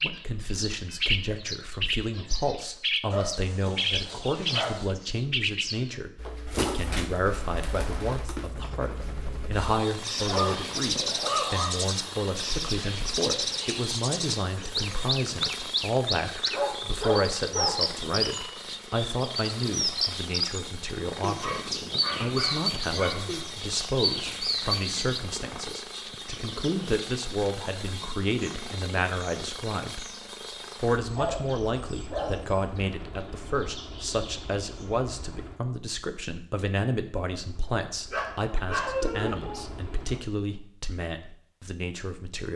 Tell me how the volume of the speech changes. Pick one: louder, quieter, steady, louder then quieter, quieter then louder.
steady.